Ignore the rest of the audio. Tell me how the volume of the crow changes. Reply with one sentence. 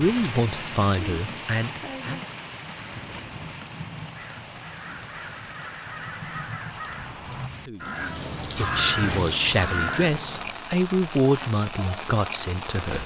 The volume of the crow goes up.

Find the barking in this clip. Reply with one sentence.
The barking can't be heard in this clip.